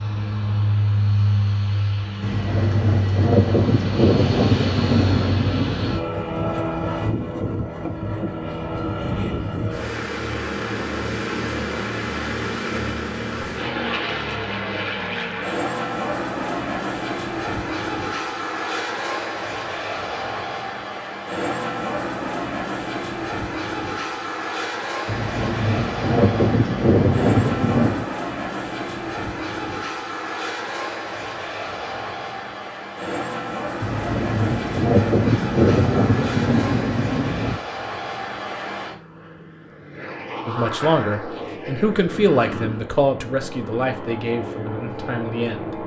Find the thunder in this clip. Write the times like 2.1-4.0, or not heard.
2.2-6.0, 25.1-28.1, 33.8-37.6.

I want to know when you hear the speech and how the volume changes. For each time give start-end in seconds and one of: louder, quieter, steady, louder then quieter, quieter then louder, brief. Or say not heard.
40.5-45.8 quieter.